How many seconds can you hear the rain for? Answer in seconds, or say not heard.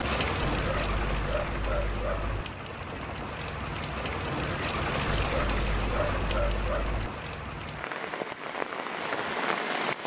10 s.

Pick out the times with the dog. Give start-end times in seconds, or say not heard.
0.6-2.5, 5.0-7.1.